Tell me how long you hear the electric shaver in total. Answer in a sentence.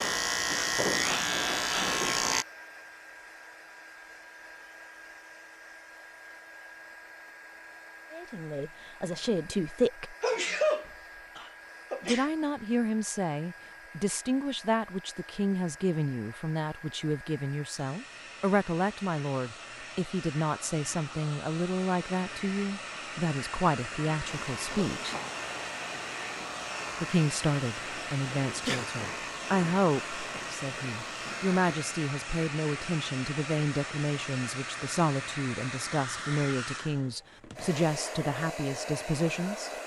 The electric shaver can be heard for 10 seconds in total.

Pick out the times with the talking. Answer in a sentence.
You can hear the talking from 8.1 to 10.2 s, from 12.0 to 25.1 s and from 27.0 to 39.7 s.